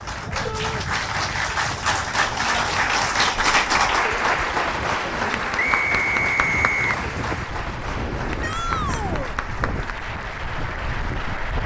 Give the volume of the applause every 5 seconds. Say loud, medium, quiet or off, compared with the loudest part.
loud, medium, medium.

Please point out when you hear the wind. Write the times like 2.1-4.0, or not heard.
0.0-11.6.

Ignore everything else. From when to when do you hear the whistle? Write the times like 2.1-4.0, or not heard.
5.6-7.0.